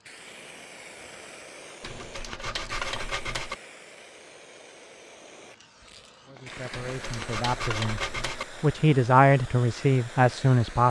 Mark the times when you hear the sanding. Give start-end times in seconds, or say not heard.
1.8-3.5, 6.7-8.4.